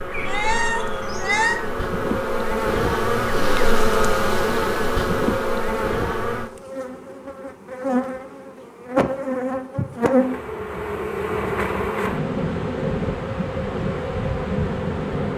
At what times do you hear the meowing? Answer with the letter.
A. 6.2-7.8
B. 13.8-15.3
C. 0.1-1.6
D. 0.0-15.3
C.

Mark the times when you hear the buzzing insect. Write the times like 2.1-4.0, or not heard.
0.0-15.3.